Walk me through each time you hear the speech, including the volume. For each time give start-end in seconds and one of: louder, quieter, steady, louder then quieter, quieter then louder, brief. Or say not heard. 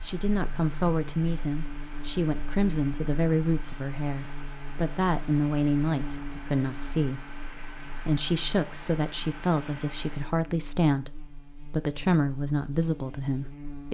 0.0-13.9 steady.